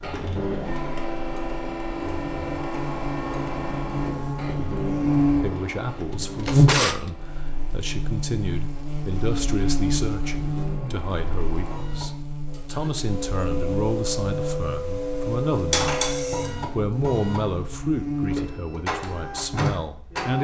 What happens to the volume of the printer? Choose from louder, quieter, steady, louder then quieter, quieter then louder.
quieter then louder.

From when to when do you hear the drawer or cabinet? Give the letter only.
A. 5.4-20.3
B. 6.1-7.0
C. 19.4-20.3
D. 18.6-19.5
B.